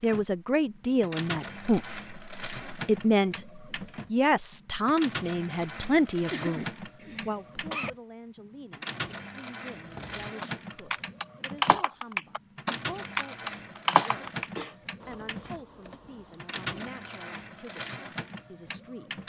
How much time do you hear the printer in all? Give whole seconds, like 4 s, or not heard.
19 s.